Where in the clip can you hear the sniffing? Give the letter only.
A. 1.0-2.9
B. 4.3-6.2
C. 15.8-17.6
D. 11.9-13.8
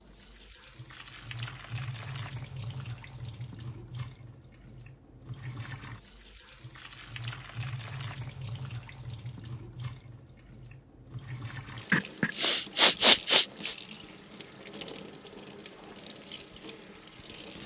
D.